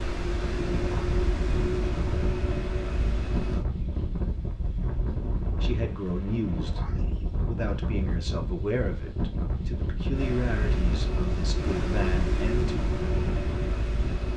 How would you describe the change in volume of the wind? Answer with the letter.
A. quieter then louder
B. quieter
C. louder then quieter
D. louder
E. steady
E.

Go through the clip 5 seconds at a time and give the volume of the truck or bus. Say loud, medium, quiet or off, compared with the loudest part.
loud, off, loud.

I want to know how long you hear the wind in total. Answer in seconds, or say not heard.
14 s.